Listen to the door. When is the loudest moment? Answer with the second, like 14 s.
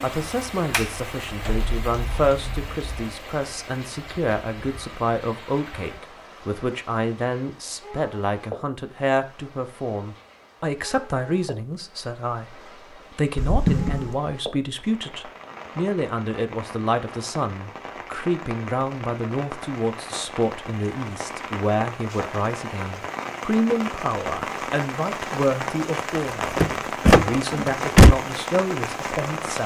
28 s.